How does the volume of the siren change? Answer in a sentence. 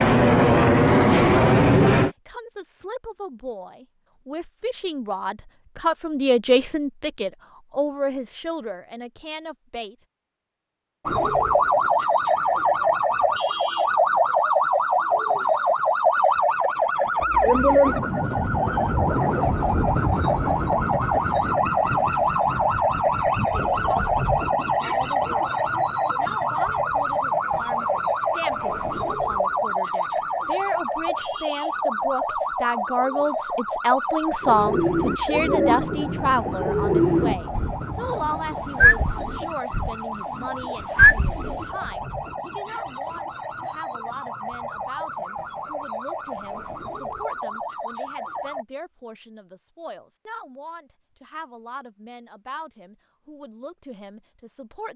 The volume of the siren goes down.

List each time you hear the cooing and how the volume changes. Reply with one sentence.
You can hear the cooing from 34.4 to 41.6 s, getting quieter then louder.